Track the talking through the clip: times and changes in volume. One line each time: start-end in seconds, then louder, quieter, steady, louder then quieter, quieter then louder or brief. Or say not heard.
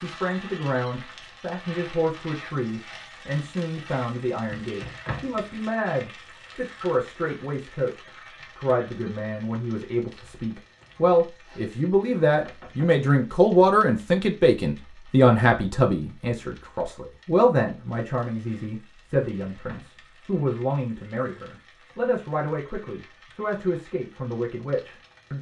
0.0-25.3 louder then quieter.